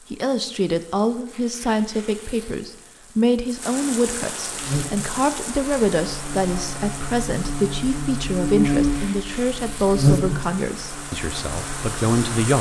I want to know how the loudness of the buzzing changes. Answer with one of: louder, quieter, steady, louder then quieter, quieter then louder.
louder then quieter.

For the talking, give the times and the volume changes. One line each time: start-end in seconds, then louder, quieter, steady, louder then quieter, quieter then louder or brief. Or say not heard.
0.1-12.5 steady.